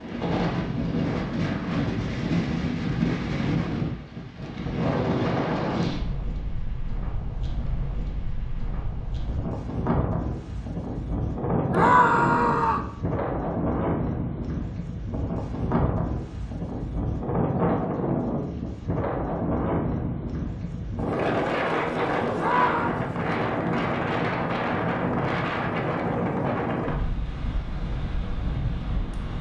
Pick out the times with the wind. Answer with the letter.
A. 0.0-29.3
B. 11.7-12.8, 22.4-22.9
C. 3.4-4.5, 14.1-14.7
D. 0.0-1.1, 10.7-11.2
A.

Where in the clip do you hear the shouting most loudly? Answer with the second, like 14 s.
12 s.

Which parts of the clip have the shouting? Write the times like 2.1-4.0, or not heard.
11.7-12.8, 22.4-22.9.